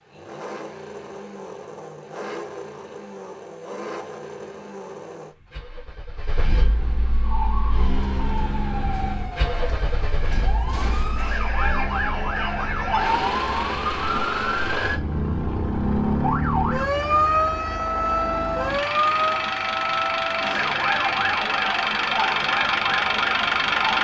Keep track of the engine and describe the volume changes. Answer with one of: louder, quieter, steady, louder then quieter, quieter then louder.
louder.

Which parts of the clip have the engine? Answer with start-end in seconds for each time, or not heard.
0.0-23.9.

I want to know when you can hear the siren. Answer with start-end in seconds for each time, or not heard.
7.2-23.9.